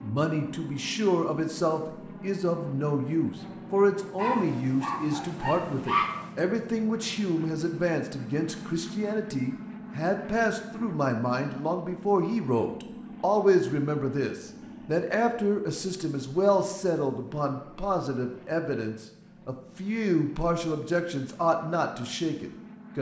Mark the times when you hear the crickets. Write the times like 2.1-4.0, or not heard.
not heard.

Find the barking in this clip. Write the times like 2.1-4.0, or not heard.
4.2-6.3.